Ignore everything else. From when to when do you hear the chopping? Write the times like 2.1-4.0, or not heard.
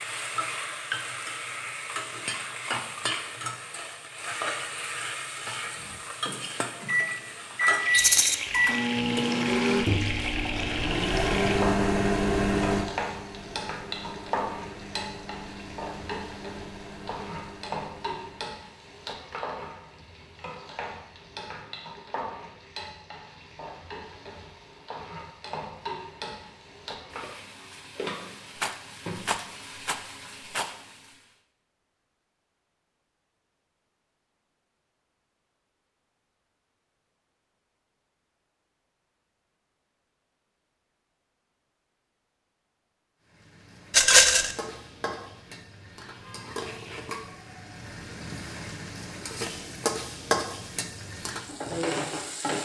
not heard.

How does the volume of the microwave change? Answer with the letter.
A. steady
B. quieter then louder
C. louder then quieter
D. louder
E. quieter
E.